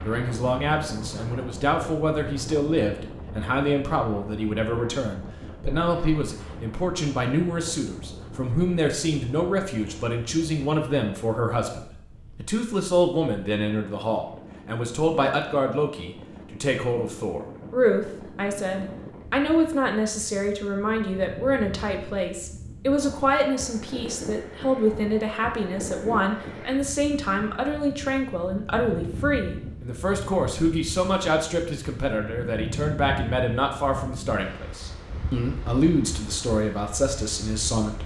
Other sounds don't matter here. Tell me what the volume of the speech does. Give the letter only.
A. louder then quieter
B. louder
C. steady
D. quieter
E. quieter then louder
C.